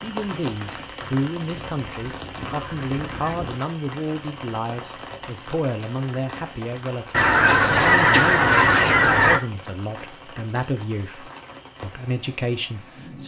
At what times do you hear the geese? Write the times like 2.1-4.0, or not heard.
1.6-3.5, 7.1-9.4.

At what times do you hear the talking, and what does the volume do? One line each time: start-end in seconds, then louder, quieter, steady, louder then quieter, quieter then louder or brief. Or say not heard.
0.0-13.2 steady.